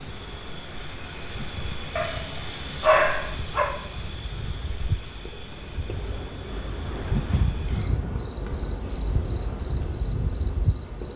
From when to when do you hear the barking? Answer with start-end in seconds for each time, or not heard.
1.9-3.6.